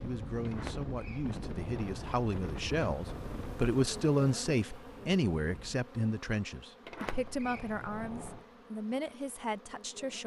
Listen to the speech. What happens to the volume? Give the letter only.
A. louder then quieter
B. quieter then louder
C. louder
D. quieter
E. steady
A.